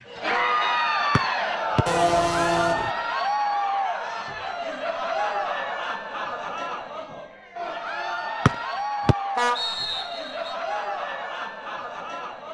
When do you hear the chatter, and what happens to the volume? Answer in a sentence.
The chatter can be heard from 0.1 to 12.4 s, getting quieter.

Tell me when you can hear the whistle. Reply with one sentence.
The whistle can be heard from 1.1 to 1.9 s and from 8.4 to 10.6 s.